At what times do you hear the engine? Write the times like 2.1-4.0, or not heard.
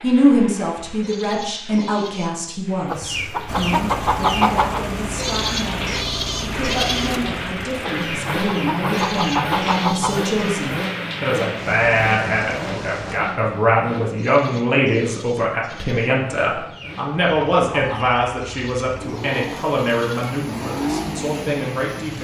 3.5-22.1.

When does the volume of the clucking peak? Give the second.
4 s.